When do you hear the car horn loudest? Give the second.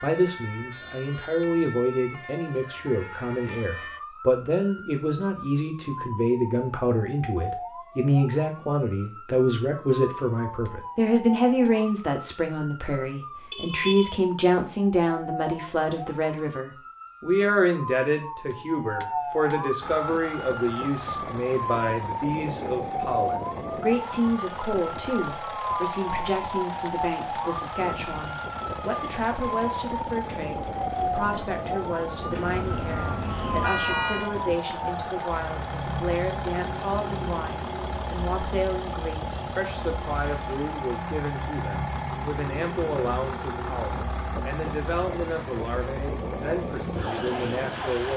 34 s.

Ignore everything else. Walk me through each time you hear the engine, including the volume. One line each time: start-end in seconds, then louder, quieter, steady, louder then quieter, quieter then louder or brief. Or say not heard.
19.8-48.1 steady.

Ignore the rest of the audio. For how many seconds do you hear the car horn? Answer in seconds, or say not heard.
3 s.